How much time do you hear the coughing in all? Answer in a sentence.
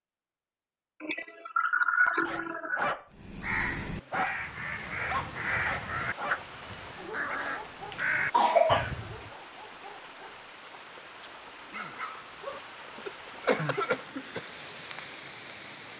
The coughing can be heard for 5 seconds in total.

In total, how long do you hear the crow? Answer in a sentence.
The crow can be heard for 6 seconds in total.